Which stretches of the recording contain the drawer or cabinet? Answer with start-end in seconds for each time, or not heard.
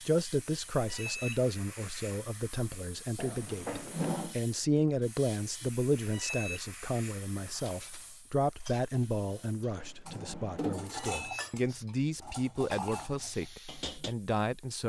3.1-4.3, 9.3-10.9.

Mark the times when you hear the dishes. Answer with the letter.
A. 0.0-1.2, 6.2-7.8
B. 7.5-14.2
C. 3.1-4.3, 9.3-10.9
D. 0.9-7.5
B.